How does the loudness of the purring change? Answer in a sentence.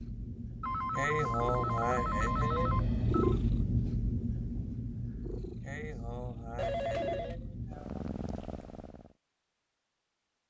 The volume of the purring goes up, then down.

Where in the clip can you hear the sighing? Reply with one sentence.
The sighing can be heard from 0.9 to 2.9 s and from 5.6 to 8.0 s.